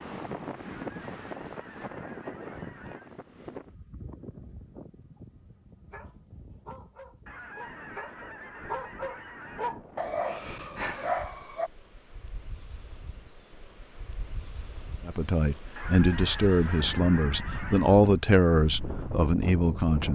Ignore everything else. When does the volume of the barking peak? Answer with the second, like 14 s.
11 s.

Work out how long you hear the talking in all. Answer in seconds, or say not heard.
5 s.